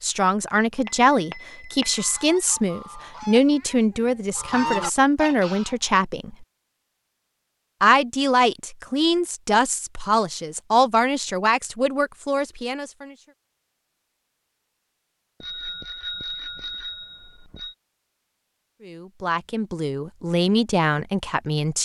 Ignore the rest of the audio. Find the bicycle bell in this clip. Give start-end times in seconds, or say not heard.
0.8-2.0, 15.4-17.8.